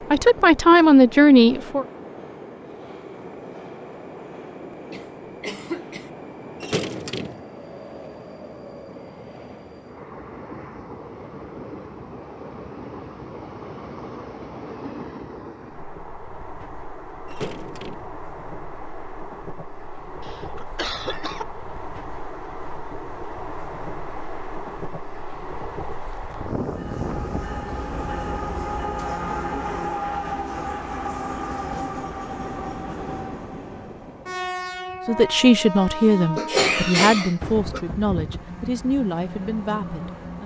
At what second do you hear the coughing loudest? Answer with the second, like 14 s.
37 s.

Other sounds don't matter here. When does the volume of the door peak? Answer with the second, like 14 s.
7 s.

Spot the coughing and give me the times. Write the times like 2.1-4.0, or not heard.
4.9-6.1, 20.2-21.4, 36.4-37.8.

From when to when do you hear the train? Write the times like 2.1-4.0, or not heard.
0.0-40.4.